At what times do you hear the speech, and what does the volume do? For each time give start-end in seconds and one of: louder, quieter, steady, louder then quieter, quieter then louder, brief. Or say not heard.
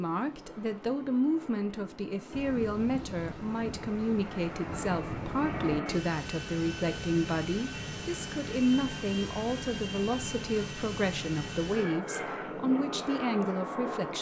0.0-14.1 steady.